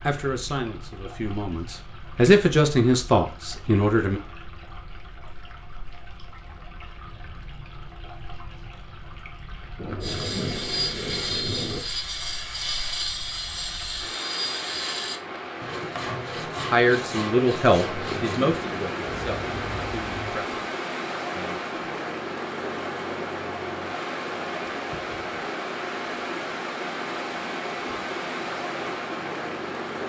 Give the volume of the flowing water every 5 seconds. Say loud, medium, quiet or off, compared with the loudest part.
quiet, quiet, medium, loud, loud, loud.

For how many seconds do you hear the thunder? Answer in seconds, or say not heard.
4 s.